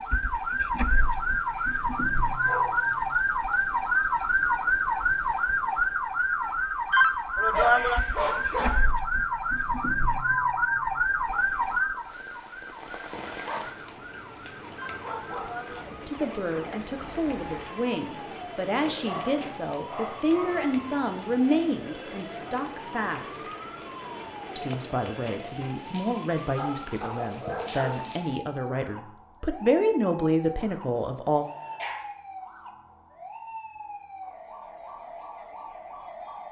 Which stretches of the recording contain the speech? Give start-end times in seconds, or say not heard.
16.1-23.4, 24.6-31.4.